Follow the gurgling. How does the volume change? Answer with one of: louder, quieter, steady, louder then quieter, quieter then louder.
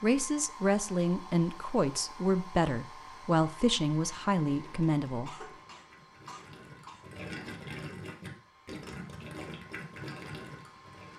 louder.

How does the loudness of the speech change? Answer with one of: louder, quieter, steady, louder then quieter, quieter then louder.
steady.